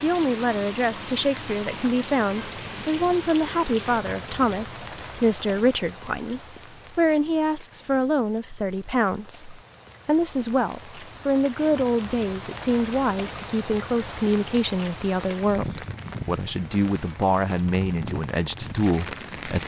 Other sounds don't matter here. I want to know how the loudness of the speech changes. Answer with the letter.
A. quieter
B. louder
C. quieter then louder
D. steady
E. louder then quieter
D.